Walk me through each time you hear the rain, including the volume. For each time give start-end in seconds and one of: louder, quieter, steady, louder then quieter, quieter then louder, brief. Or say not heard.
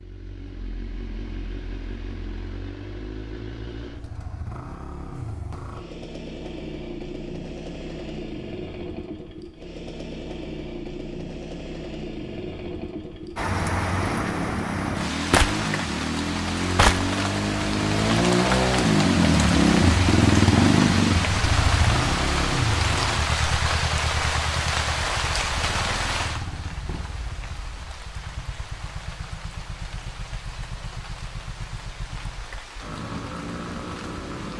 13.3-34.5 quieter.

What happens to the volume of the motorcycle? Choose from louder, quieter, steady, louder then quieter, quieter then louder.
louder then quieter.